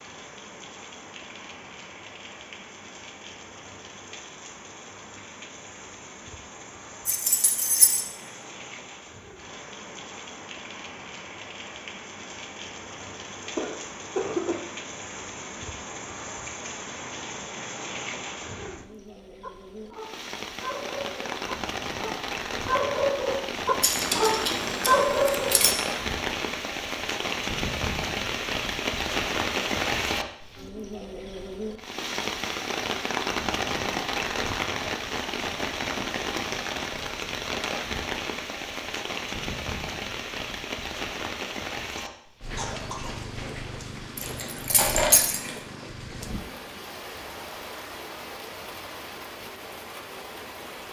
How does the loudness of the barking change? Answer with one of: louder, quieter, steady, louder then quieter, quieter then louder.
louder.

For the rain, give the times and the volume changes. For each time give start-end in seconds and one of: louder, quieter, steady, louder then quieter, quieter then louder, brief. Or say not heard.
0.0-50.8 louder then quieter.